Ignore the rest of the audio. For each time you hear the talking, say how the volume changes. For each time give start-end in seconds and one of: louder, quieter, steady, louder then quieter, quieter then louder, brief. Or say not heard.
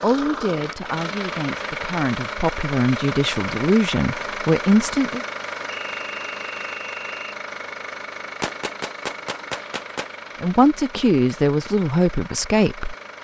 0.0-5.2 louder
10.4-12.9 brief.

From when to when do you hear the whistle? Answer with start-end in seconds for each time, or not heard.
5.8-7.3.